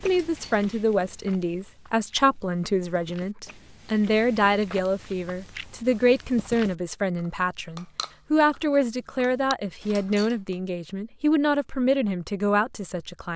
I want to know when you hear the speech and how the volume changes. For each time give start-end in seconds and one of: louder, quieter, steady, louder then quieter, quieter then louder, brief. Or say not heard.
0.0-13.3 steady.